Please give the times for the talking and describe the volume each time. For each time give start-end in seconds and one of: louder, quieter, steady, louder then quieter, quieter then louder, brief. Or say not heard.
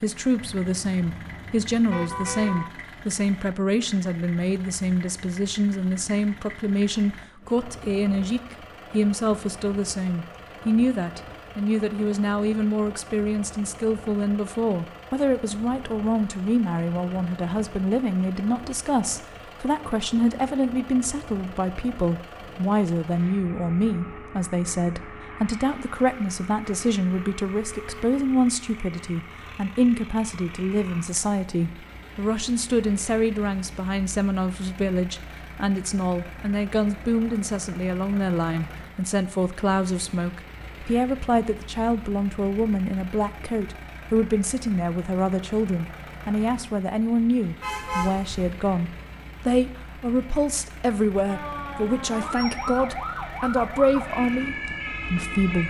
0.0-55.6 steady.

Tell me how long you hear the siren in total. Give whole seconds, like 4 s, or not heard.
4 s.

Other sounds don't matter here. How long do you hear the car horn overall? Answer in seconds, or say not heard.
3 s.